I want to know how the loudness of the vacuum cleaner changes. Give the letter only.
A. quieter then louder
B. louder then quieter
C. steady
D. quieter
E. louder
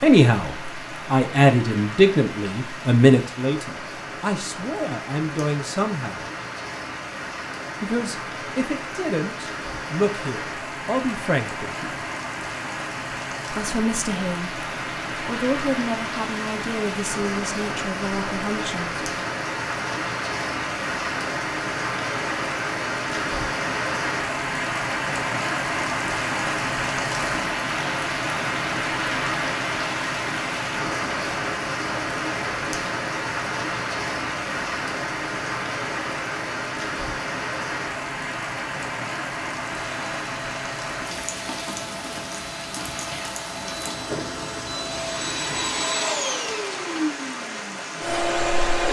E.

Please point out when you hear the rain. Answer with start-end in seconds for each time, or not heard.
0.0-48.8.